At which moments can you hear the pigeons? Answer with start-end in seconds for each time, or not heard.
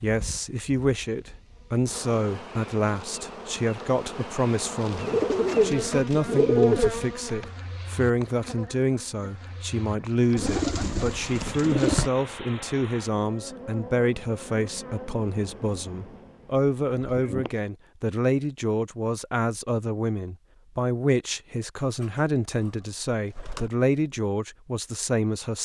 5.0-6.9, 10.3-12.1, 21.8-23.7.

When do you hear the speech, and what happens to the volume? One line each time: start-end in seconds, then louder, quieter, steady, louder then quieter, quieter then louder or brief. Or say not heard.
0.0-25.6 steady.